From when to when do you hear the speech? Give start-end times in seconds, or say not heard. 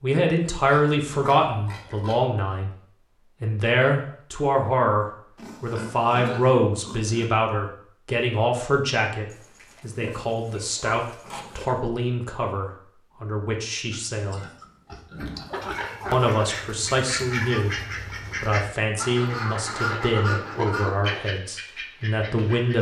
0.0-2.7, 3.4-14.4, 16.1-22.7.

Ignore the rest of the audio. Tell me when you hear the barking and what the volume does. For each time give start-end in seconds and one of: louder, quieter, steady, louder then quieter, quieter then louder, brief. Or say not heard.
not heard.